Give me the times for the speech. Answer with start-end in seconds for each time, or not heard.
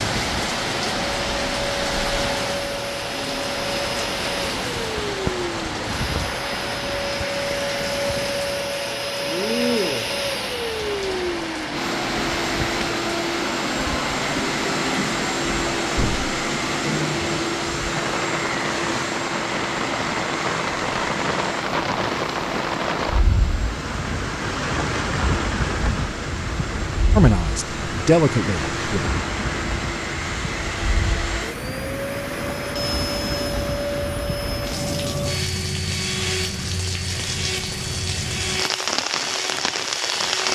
27.1-29.1.